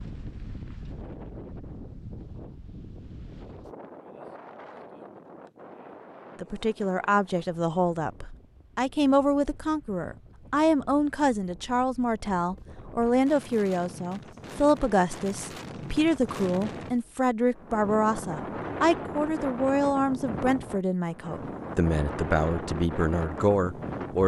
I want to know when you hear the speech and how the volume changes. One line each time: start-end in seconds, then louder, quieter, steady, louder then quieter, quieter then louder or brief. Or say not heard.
6.4-24.2 steady.